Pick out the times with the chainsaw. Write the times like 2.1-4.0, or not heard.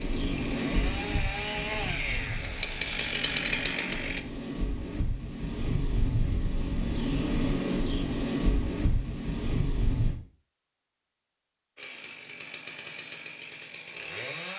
0.0-4.2, 11.8-14.5.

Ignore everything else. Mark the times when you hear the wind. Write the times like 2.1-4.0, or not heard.
0.0-10.2.